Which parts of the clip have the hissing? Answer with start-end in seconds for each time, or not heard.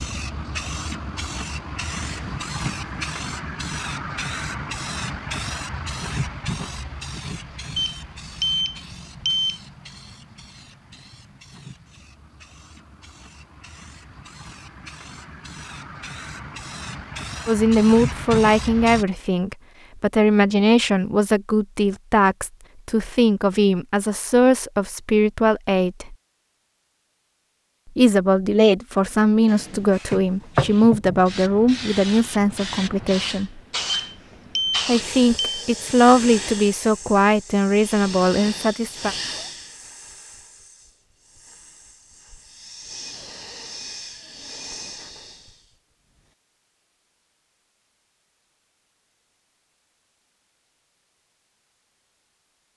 0.0-19.1, 29.9-46.4.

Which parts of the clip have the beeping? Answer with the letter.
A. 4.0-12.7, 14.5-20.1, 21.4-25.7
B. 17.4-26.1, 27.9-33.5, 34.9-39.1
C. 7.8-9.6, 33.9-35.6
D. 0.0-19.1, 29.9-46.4
C.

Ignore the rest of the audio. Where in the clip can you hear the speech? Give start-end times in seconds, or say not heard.
17.4-26.1, 27.9-33.5, 34.9-39.1.